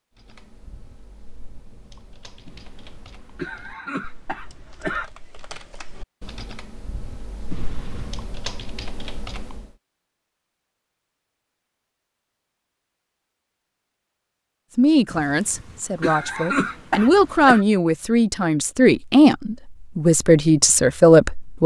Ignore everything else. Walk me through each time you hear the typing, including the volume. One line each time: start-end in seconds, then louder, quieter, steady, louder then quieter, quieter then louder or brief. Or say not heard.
0.1-9.8 louder.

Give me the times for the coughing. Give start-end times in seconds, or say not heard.
2.5-5.1, 7.5-8.2, 15.1-17.6.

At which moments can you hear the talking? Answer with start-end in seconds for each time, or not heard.
14.8-21.6.